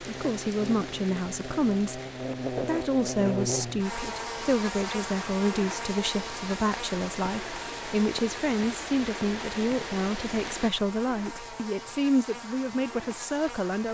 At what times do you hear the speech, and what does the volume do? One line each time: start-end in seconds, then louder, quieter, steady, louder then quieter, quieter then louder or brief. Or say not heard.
0.0-13.8 steady.